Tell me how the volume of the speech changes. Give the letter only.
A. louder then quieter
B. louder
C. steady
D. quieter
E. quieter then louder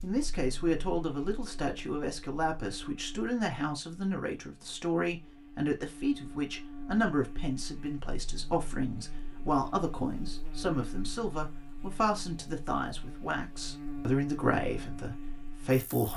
C.